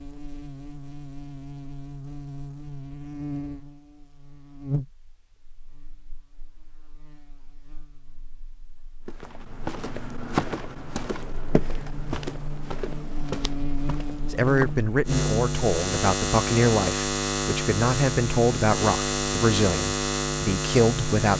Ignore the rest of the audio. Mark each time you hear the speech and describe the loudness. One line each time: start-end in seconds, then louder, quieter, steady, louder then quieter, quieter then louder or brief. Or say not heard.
14.3-21.3 steady.